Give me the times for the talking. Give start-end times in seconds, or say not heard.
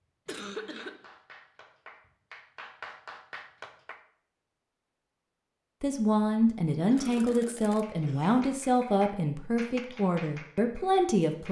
5.8-11.4.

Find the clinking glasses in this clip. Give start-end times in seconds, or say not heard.
not heard.